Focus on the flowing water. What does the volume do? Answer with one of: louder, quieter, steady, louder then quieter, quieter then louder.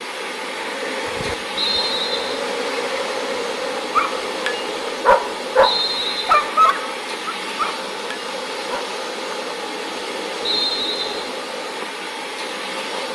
steady.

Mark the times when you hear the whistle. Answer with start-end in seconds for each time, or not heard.
1.6-2.5, 5.6-6.5, 10.4-11.3.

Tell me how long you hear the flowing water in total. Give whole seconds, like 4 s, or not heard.
13 s.